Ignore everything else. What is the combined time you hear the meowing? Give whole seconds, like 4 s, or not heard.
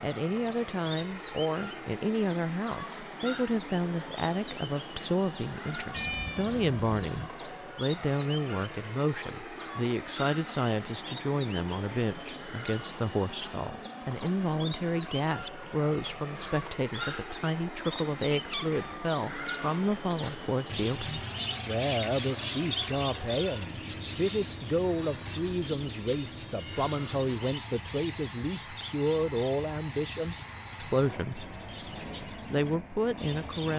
3 s.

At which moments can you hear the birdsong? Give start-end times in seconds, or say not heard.
0.0-33.7.